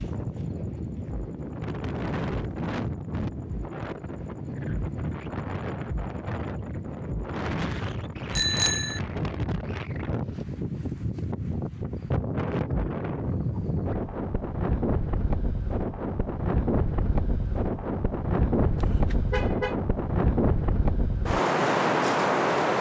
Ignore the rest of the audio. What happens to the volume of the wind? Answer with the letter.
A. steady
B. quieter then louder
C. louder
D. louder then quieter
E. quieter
C.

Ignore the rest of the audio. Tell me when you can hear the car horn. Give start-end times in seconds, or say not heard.
18.8-19.8.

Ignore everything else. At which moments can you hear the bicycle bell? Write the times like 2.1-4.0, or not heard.
8.3-9.0.